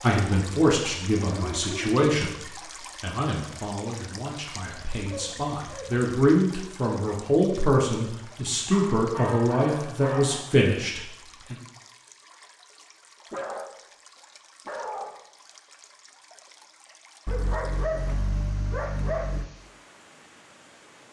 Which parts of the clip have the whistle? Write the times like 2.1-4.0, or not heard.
not heard.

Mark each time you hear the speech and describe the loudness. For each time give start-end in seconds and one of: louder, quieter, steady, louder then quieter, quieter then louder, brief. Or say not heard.
0.0-11.6 quieter then louder.